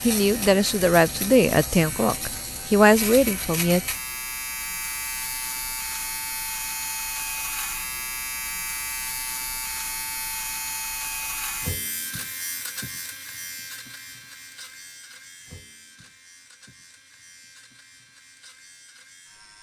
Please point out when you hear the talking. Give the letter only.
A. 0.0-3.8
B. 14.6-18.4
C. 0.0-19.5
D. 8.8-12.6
A.